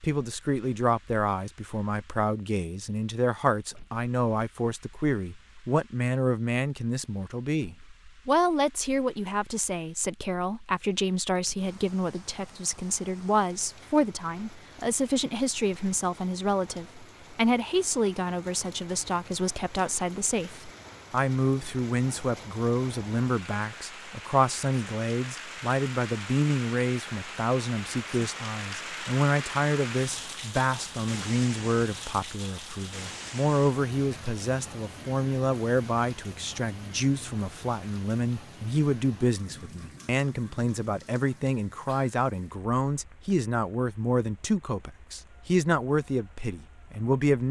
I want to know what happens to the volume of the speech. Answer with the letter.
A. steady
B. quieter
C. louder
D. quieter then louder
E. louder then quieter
A.